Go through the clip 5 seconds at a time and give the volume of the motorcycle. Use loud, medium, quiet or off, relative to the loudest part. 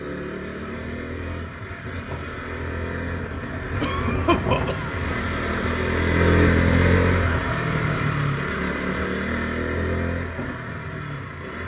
medium, loud, medium.